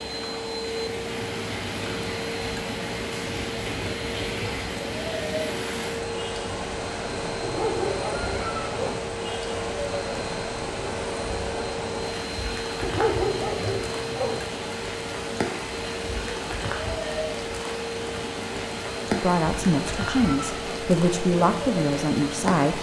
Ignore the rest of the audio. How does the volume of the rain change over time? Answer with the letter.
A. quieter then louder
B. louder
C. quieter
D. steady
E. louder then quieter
D.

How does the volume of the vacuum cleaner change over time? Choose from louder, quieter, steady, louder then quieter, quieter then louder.
steady.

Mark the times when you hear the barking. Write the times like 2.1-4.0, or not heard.
7.4-9.0, 12.8-14.4.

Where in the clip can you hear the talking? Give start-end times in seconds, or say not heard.
19.1-22.7.